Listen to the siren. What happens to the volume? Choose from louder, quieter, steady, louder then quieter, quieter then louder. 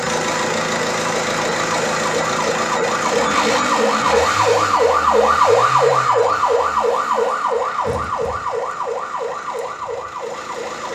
louder then quieter.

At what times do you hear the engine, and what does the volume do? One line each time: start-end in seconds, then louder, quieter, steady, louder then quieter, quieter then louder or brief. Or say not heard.
0.0-10.9 quieter.